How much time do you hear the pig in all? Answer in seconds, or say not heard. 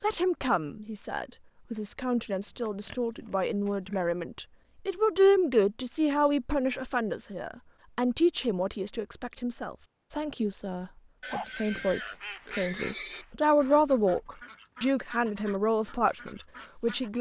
4 s.